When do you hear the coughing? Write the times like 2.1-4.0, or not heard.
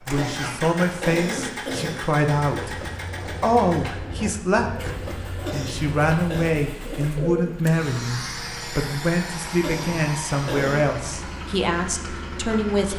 0.1-2.0, 5.3-6.5, 9.5-10.8.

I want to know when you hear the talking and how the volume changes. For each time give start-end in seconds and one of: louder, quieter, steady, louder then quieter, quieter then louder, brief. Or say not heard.
0.1-2.8 brief
3.4-12.9 steady.